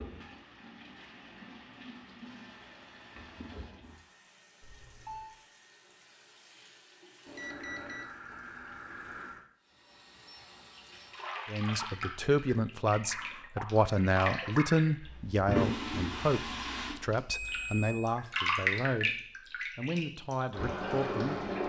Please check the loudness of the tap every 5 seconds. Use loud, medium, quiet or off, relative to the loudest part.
quiet, quiet, medium, loud, loud.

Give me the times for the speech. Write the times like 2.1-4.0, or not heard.
11.5-21.6.